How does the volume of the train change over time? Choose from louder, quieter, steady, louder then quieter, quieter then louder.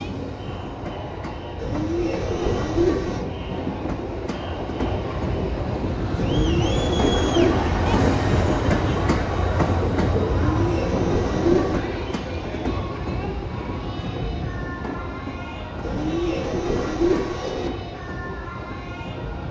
louder then quieter.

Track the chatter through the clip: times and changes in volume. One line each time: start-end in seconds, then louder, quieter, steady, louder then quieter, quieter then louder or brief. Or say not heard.
0.0-19.4 louder then quieter.